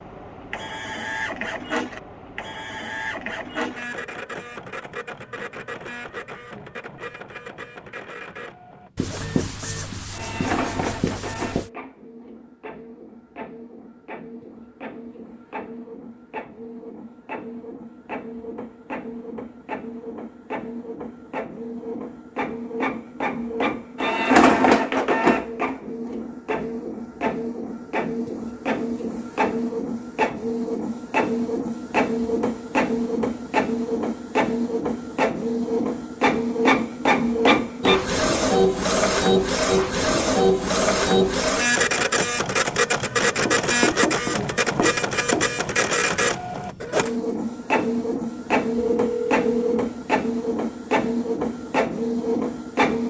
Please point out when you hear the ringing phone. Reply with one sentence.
The ringing phone can be heard from 48.8 to 49.9 s.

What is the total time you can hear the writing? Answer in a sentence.
You can hear the writing for 5 seconds altogether.